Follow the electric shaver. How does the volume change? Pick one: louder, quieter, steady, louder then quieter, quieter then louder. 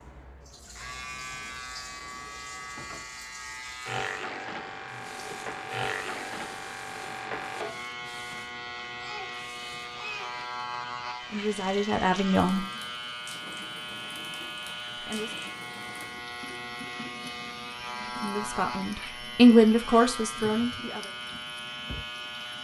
steady.